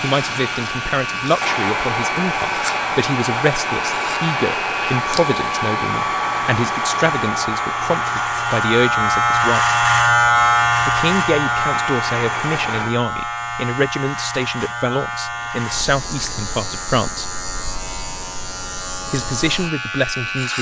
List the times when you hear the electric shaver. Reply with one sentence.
You can hear the electric shaver from 0.0 to 20.5 s.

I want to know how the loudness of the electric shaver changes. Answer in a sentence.
The loudness of the electric shaver goes up, then down.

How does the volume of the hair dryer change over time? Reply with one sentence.
The loudness of the hair dryer goes down.